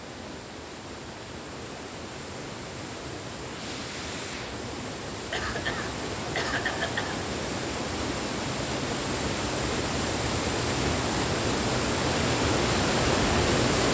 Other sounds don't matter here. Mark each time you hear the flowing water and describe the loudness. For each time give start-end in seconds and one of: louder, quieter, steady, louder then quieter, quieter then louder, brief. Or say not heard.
0.0-13.9 louder.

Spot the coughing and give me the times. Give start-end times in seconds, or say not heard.
5.3-7.2.